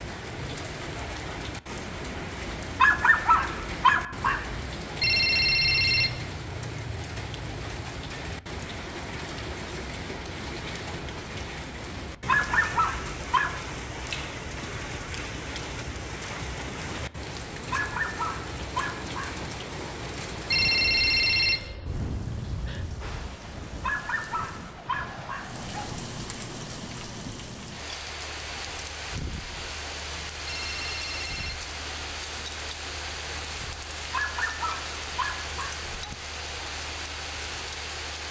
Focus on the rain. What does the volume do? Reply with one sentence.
The loudness of the rain stays about the same.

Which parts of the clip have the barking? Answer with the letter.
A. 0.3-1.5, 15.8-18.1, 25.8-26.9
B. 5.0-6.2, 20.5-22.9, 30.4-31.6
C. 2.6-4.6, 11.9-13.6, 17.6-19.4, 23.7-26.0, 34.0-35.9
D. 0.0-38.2
C.